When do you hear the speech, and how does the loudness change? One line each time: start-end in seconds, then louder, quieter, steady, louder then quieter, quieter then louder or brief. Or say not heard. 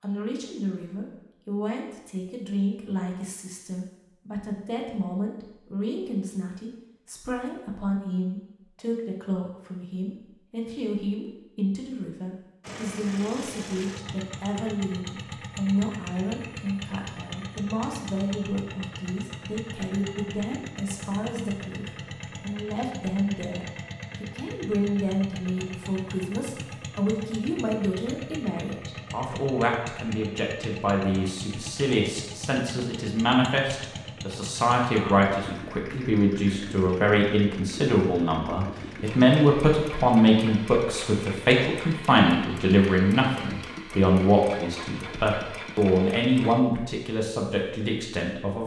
0.0-48.6 louder.